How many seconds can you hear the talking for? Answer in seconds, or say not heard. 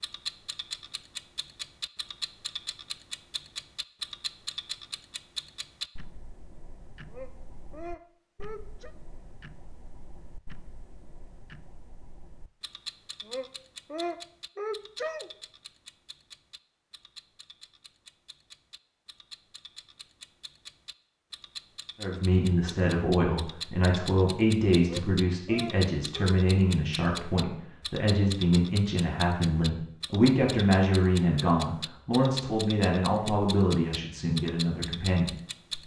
14 s.